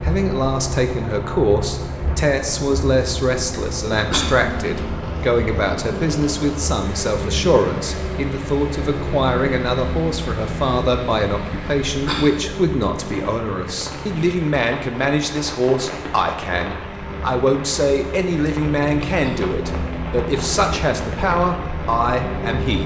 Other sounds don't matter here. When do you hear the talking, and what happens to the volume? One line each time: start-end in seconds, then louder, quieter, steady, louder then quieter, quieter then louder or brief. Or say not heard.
0.0-22.8 steady.